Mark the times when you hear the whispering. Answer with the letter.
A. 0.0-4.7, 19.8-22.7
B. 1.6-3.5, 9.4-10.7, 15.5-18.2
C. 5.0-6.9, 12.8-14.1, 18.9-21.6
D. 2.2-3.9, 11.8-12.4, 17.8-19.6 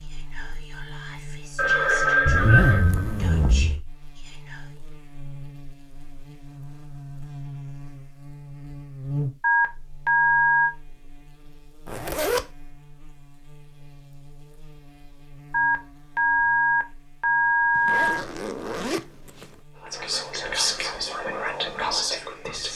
A.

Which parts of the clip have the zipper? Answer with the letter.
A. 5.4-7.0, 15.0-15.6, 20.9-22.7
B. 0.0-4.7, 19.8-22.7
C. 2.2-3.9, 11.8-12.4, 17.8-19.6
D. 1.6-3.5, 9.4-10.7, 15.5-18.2
C.